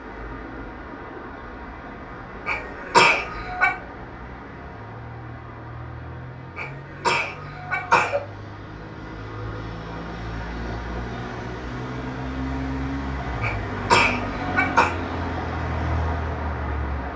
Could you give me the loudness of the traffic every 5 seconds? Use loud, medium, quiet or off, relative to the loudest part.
medium, medium, loud, loud.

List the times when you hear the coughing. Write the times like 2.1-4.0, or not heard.
2.5-3.8, 6.5-8.2, 13.4-14.9.